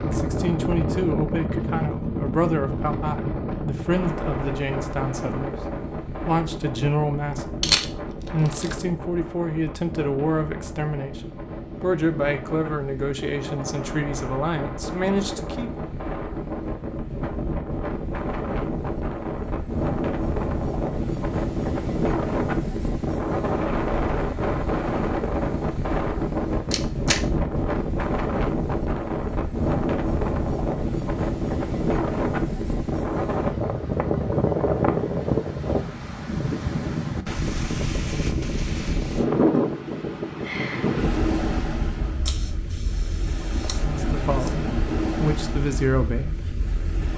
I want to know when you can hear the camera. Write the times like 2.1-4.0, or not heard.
7.6-8.8, 26.7-27.2, 42.2-44.5.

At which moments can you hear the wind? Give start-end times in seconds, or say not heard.
0.0-47.1.